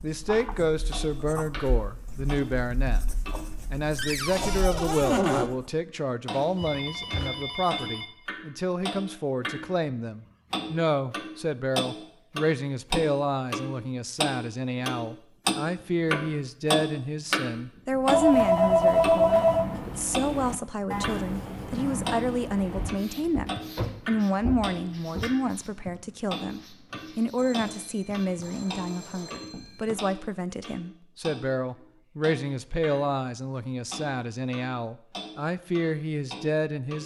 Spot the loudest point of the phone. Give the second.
19 s.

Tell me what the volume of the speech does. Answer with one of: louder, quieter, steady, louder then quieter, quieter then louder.
steady.